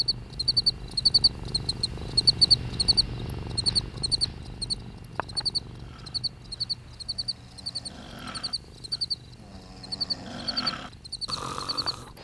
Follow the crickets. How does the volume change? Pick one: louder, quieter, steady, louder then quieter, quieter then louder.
quieter.